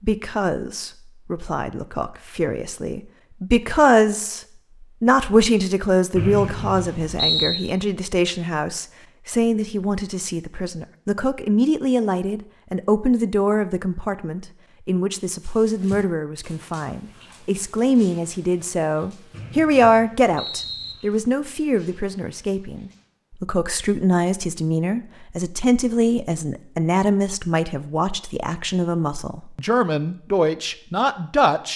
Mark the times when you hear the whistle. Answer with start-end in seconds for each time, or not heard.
6.2-7.7, 19.3-20.9.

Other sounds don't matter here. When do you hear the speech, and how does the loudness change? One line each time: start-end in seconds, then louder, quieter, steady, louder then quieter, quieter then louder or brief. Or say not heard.
0.0-31.7 steady.